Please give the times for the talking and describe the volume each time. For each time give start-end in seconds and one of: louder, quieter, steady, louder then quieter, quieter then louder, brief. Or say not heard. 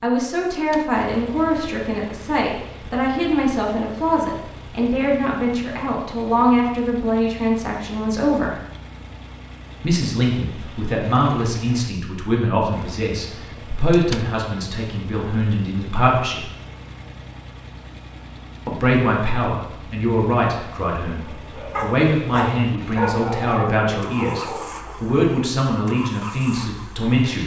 0.0-8.6 steady
9.8-16.5 steady
18.6-27.4 steady.